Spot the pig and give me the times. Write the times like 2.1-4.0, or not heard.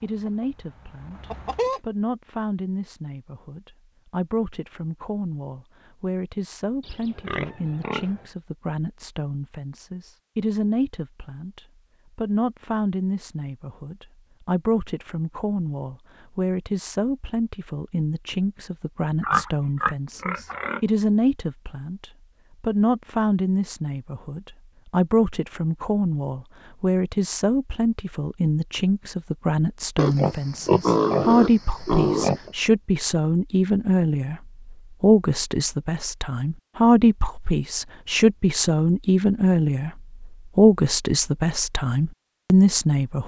6.8-8.2, 19.2-20.8, 29.9-32.5.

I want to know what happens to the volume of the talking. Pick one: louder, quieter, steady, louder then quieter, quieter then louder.
louder.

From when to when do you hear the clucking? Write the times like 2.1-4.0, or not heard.
0.0-1.8.